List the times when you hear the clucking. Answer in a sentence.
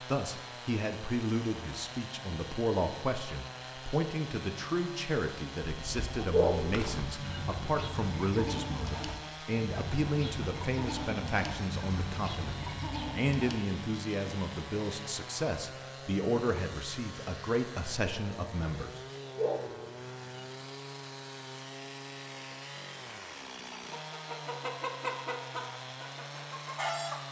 The clucking can be heard from 5.8 to 13.6 s and from 23.7 to 27.2 s.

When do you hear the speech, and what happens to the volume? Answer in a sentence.
You can hear the speech from 0.1 to 19.0 s, at a steady volume.